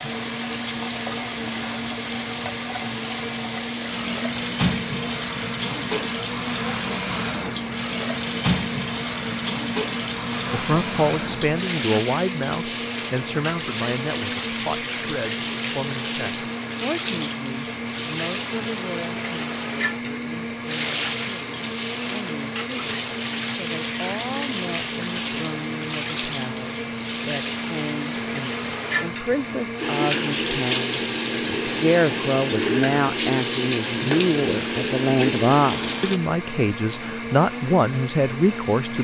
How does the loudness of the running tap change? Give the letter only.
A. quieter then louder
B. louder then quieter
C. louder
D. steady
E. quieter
D.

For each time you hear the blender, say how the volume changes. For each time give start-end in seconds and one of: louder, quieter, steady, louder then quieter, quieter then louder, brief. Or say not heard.
0.0-38.9 steady.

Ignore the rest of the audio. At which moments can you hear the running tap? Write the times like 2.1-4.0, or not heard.
0.0-36.2.